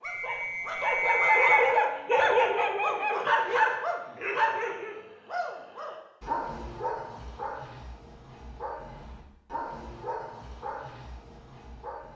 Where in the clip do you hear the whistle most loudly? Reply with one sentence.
The volume of the whistle peaks at 1 second.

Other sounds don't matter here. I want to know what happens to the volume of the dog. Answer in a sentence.
The volume of the dog goes down.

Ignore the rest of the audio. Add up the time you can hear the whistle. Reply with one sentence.
The whistle can be heard for 2 seconds in total.